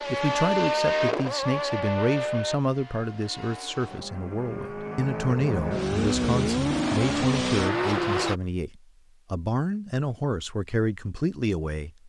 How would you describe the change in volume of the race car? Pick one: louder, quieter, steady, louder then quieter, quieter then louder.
quieter then louder.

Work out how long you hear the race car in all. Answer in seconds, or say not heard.
8 s.